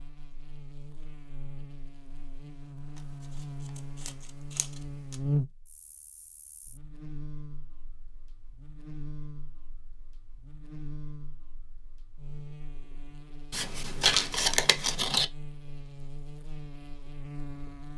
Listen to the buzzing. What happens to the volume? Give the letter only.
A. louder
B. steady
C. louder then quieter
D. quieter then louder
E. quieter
C.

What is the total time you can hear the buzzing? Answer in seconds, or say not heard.
18 s.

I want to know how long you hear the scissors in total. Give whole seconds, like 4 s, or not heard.
3 s.